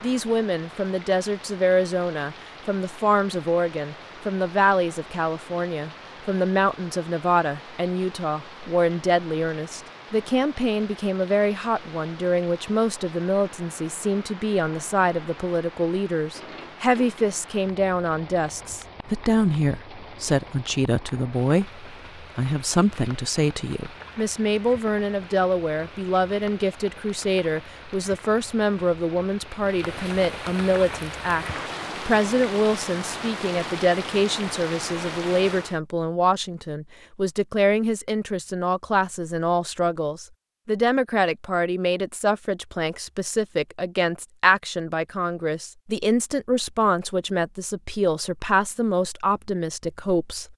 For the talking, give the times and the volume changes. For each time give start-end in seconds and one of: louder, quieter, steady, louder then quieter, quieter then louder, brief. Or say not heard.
0.0-50.5 steady.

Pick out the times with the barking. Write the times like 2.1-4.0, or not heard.
not heard.